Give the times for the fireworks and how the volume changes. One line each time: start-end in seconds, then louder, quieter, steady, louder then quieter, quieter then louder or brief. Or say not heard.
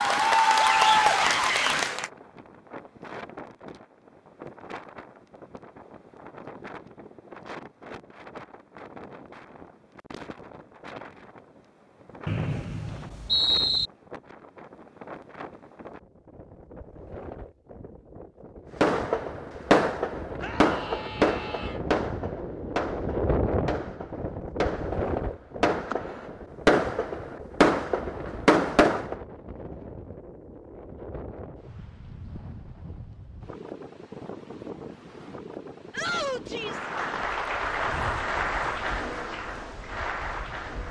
18.8-29.1 quieter then louder.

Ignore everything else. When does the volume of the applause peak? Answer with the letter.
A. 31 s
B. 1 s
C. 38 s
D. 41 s
B.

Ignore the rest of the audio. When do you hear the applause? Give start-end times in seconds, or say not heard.
0.0-2.1, 36.5-40.8.